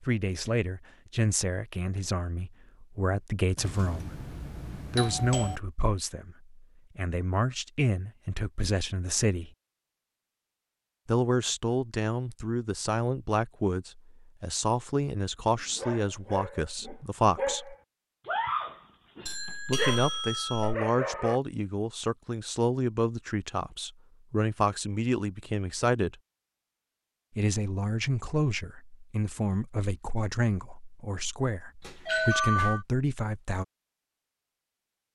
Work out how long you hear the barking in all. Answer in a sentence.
The barking can be heard for 6 seconds in total.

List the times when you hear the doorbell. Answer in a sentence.
The doorbell can be heard from 3.5 to 5.6 s, from 19.2 to 20.8 s and from 31.8 to 32.9 s.